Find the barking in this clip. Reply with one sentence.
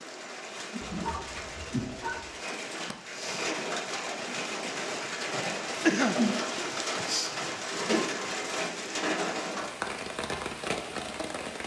You can hear the barking from 0.8 to 2.4 s.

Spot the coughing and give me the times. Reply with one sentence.
The coughing can be heard from 5.8 to 6.2 s.